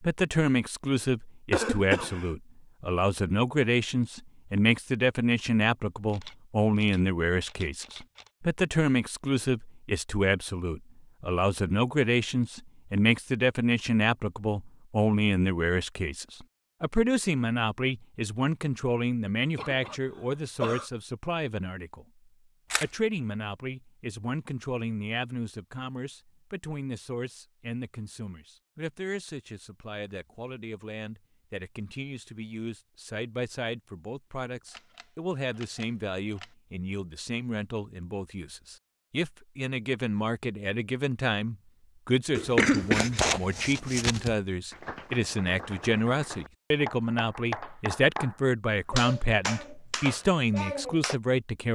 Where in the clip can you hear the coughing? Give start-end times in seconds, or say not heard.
1.5-2.3, 19.6-20.9, 42.4-44.4.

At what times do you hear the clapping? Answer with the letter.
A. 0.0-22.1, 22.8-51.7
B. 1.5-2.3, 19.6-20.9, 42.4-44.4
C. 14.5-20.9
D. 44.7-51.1
D.